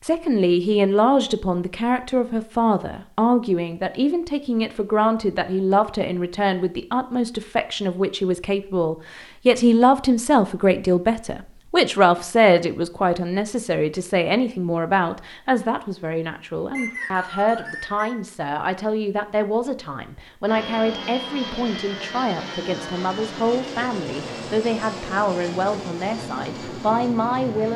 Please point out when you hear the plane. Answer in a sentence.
The plane can be heard from 20.4 to 27.7 s.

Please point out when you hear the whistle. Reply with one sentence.
The whistle can be heard from 16.7 to 18.1 s.